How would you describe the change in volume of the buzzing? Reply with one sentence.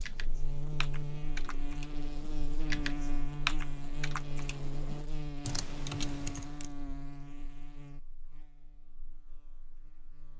The volume of the buzzing goes down.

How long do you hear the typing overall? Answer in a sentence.
The typing can be heard for 7 seconds in total.